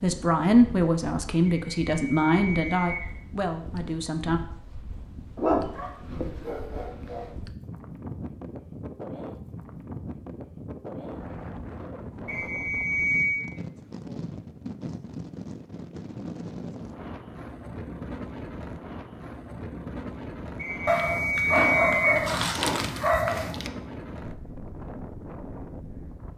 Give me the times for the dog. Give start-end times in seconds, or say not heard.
5.3-7.3, 20.9-23.7.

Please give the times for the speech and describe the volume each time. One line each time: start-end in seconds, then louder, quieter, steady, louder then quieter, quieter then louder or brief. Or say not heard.
0.0-4.4 quieter.